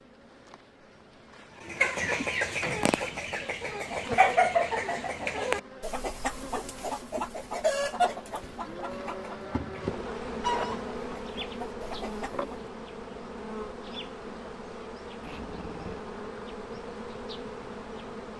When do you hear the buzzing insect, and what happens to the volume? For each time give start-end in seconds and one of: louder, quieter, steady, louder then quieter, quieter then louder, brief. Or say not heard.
0.0-18.3 louder.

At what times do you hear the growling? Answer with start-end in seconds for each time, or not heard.
15.2-16.1.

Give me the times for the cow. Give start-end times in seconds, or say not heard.
8.6-10.1.